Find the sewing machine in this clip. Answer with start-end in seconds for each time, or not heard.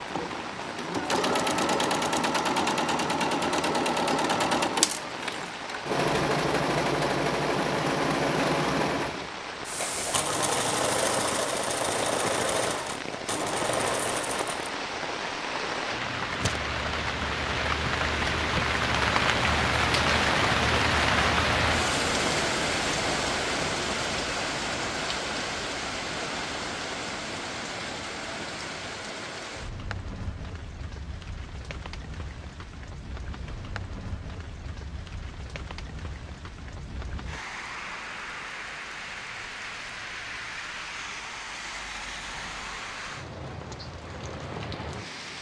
0.0-14.8.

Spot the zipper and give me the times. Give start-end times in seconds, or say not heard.
not heard.